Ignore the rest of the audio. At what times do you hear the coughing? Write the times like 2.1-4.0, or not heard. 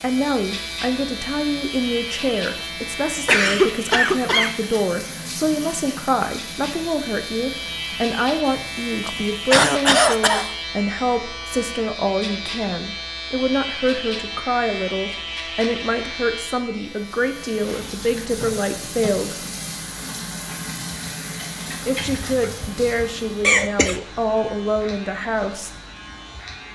3.2-4.6, 9.1-10.5, 22.2-24.0.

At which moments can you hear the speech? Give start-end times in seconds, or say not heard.
0.0-19.4, 21.9-25.7.